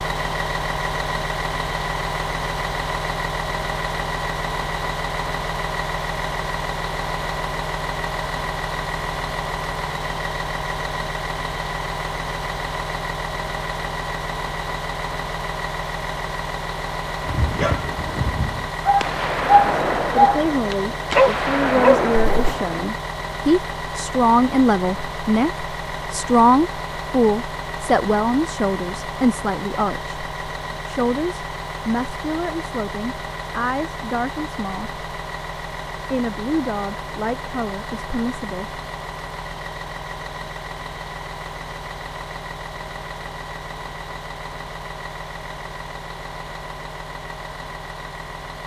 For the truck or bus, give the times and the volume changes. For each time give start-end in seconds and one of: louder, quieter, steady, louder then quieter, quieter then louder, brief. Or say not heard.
0.0-48.6 quieter.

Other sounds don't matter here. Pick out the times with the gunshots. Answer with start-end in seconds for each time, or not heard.
19.0-22.8.